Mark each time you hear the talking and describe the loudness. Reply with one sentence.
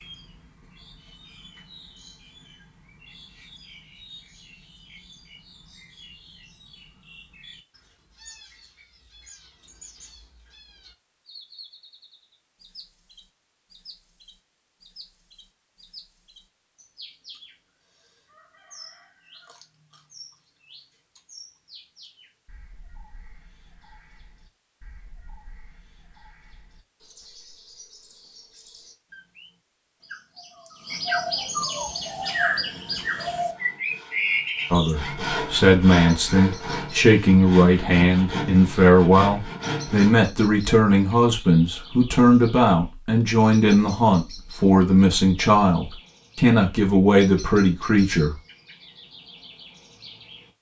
You can hear the talking from 34.7 to 48.4 s, at a steady volume.